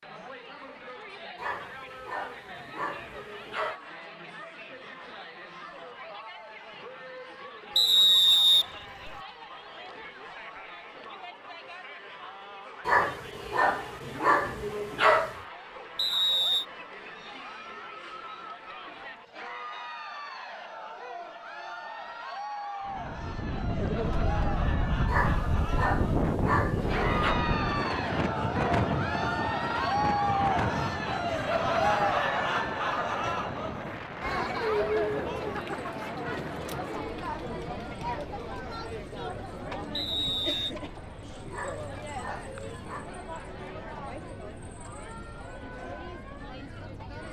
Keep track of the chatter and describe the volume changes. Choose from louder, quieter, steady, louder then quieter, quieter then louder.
louder then quieter.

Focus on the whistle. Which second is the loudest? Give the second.
8 s.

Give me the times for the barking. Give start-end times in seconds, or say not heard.
1.4-3.8, 12.8-15.4, 25.1-27.4, 41.5-43.1.